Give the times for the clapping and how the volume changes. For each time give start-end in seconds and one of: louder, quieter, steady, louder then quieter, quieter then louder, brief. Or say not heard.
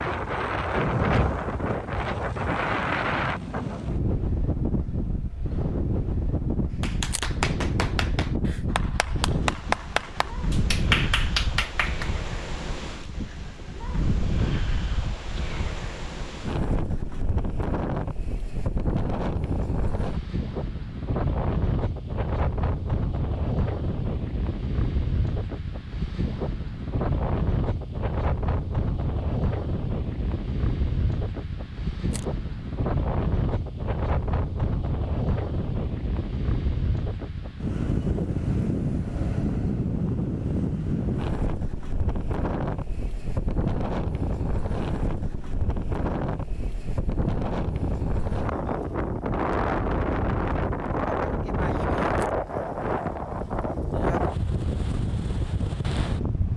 6.8-12.1 quieter then louder.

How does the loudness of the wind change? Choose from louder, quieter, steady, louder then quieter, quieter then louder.
steady.